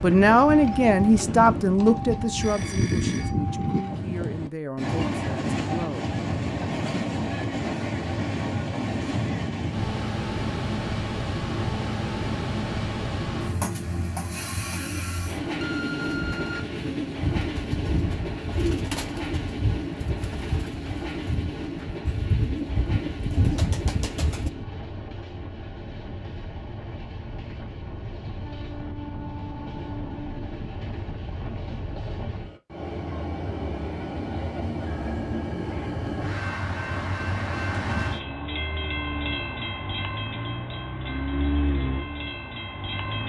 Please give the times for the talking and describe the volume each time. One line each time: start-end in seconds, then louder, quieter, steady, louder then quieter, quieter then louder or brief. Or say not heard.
0.0-6.1 quieter.